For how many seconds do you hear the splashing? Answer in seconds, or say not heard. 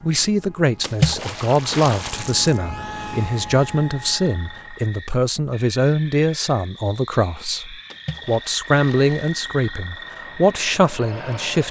3 s.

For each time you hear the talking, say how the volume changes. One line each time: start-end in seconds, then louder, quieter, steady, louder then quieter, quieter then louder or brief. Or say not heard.
0.0-11.6 steady.